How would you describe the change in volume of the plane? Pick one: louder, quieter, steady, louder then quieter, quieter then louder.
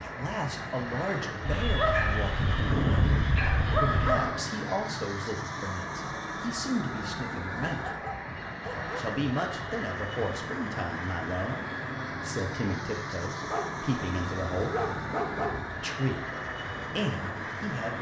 steady.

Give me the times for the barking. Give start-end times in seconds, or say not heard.
1.4-4.4, 7.7-8.9, 13.4-15.7.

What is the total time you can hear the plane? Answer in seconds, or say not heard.
18 s.